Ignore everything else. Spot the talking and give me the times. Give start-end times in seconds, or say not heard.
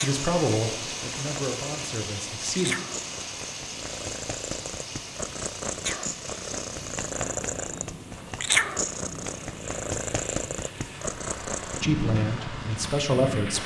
0.0-2.8, 11.8-13.6.